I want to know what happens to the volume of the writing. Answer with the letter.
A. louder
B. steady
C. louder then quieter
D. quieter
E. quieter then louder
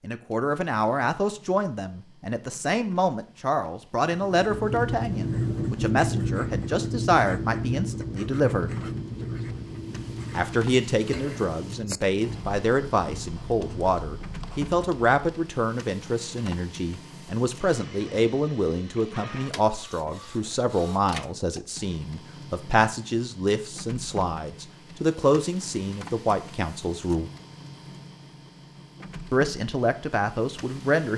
D.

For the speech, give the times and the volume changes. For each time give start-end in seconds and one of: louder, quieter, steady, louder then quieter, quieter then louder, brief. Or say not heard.
0.0-8.8 steady
10.3-27.3 steady
29.3-31.1 brief.